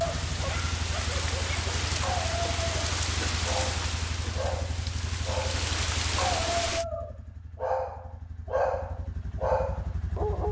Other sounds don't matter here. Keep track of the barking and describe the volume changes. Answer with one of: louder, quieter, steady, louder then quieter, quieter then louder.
louder.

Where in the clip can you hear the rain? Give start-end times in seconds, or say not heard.
0.0-6.8.